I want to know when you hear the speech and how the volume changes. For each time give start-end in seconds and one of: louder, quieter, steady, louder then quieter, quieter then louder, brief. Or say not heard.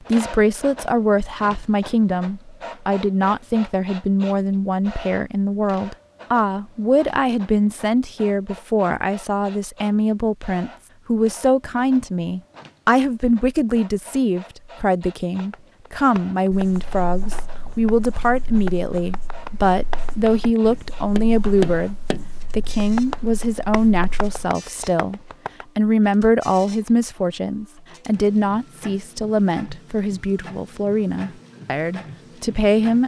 0.1-33.0 steady.